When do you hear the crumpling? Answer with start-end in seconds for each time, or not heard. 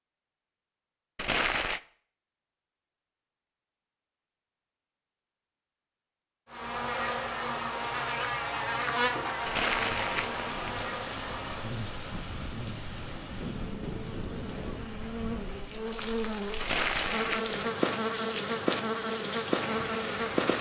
1.1-1.8, 9.4-10.9, 16.6-17.6.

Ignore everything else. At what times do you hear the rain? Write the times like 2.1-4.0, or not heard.
9.8-20.5.